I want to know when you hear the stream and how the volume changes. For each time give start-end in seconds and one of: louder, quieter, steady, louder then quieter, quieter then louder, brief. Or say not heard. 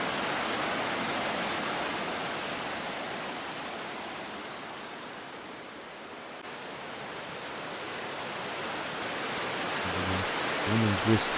0.0-11.3 quieter then louder.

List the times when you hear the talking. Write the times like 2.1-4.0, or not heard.
9.8-11.3.